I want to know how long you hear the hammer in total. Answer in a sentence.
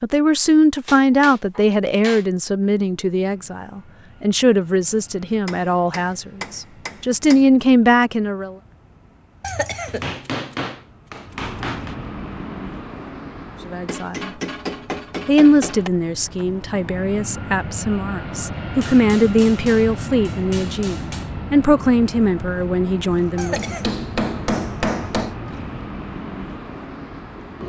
You can hear the hammer for 12 seconds altogether.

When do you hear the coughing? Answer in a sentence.
The coughing can be heard from 9.4 to 10.2 s and from 23.4 to 23.9 s.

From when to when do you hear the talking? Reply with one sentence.
The talking can be heard from 0.0 to 8.6 s, from 13.7 to 14.3 s and from 15.2 to 23.8 s.